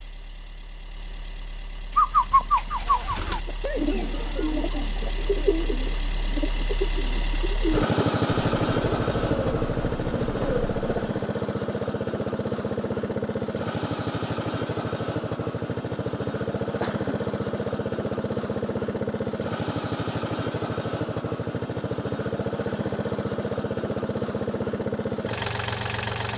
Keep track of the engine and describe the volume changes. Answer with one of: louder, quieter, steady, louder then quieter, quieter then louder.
louder.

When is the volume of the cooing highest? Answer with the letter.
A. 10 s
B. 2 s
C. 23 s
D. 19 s
B.